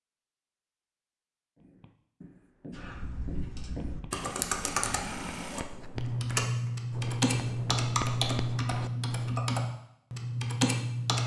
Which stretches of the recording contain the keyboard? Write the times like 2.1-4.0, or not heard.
2.7-11.2.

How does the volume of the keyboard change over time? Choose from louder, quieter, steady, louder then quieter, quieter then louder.
louder.